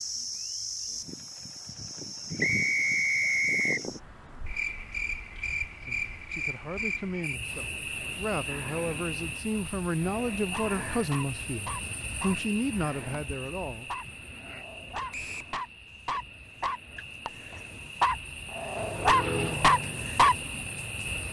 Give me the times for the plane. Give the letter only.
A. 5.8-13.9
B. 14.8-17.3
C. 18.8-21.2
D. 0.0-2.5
C.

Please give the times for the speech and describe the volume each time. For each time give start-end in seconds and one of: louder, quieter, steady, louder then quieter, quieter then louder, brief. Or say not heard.
5.8-13.9 louder.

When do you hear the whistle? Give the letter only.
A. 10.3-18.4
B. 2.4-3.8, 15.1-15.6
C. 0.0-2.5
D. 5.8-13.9
B.